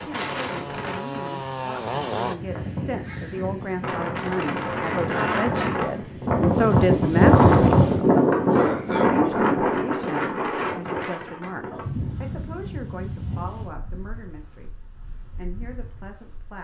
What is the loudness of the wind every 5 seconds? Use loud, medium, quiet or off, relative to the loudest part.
quiet, loud, quiet, quiet.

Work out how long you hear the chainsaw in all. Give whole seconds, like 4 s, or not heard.
2 s.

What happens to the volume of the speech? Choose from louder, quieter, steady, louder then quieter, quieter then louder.
louder then quieter.